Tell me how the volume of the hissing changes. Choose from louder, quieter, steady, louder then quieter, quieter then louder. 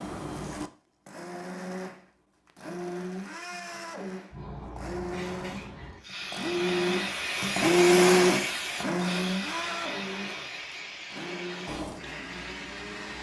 louder then quieter.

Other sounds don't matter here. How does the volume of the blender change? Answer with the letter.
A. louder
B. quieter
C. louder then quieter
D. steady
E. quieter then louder
C.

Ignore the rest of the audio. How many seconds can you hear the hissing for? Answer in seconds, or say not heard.
9 s.